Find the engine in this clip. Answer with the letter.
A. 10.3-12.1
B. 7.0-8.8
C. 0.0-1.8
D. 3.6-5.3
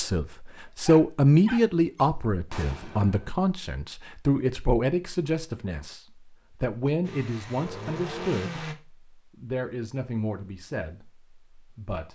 B.